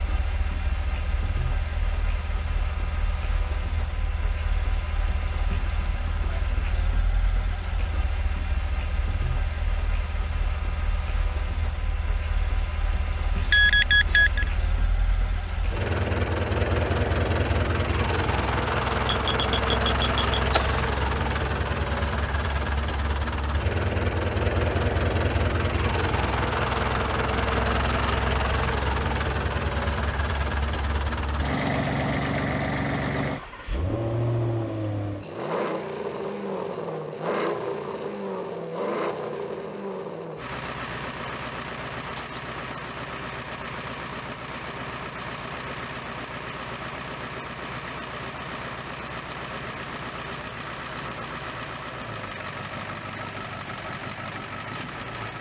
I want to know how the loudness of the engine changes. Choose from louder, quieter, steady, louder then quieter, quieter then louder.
louder then quieter.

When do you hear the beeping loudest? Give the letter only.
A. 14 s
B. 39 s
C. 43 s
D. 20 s
A.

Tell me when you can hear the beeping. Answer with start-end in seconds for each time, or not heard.
13.3-14.5, 19.1-20.9, 42.0-42.5.